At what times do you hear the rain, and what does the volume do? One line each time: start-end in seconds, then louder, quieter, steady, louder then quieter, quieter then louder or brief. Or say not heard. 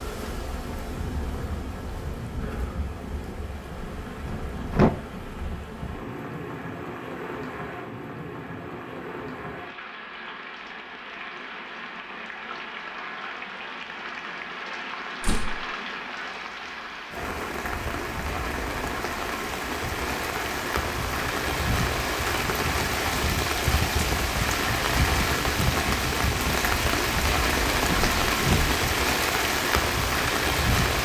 0.0-30.9 louder.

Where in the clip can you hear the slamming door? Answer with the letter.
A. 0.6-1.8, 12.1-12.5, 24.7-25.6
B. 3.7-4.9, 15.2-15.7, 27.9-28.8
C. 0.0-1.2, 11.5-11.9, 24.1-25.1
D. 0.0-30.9
B.